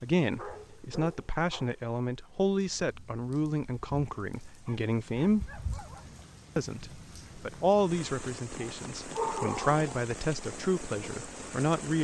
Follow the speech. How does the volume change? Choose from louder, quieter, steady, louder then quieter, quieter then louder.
steady.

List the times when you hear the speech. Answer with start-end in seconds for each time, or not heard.
0.0-5.5, 6.5-11.9.